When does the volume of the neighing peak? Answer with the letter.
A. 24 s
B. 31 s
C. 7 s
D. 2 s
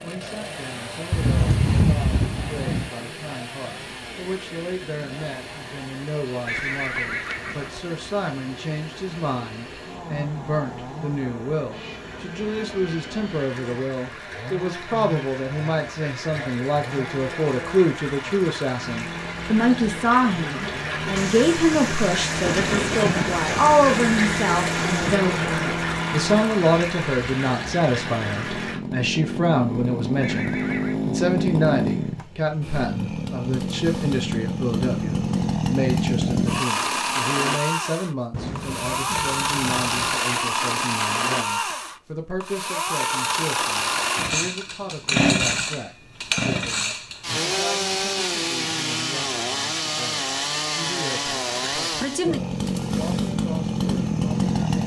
C.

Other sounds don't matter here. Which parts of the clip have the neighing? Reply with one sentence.
The neighing can be heard from 6.5 to 7.8 s and from 30.2 to 31.0 s.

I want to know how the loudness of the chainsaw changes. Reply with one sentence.
The loudness of the chainsaw goes up.